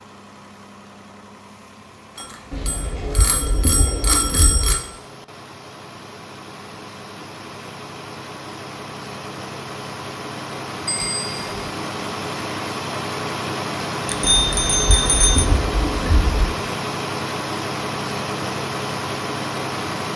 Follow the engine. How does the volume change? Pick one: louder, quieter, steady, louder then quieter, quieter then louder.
louder.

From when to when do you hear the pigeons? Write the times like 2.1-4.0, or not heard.
2.5-4.8, 14.2-16.6.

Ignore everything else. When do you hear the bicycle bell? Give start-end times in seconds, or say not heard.
2.1-4.8, 10.8-11.4, 14.1-15.5.